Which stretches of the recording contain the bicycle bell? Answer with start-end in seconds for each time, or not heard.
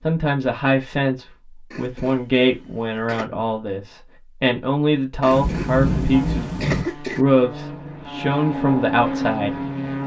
not heard.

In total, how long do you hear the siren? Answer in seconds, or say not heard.
not heard.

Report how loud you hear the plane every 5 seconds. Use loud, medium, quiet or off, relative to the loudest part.
off, loud.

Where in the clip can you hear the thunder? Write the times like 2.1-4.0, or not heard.
5.3-6.8.